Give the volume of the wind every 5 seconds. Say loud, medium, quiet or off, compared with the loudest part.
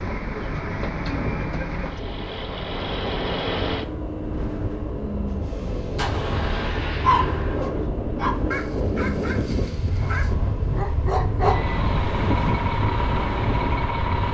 medium, loud, loud.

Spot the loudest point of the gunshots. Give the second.
6 s.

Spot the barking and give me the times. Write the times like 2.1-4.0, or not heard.
7.0-11.7.